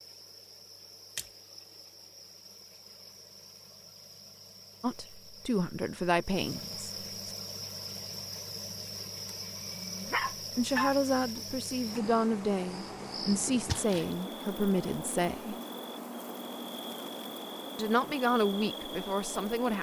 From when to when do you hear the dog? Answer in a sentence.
You can hear the dog from 9.8 to 11.1 s.